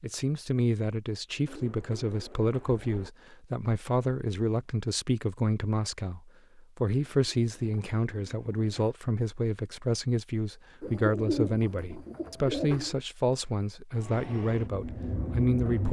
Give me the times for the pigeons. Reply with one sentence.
The pigeons can be heard from 1.4 to 3.1 s, from 7.1 to 8.9 s and from 10.8 to 12.9 s.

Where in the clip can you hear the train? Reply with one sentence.
The train can be heard from 13.9 to 15.8 s.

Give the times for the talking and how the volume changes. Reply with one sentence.
The talking can be heard from 0.0 to 15.8 s, at a steady volume.